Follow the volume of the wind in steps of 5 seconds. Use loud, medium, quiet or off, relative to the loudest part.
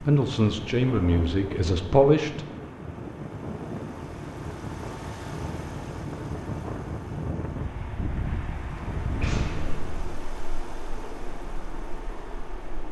loud, loud, medium.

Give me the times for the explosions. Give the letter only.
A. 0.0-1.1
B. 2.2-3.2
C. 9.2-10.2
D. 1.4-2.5
C.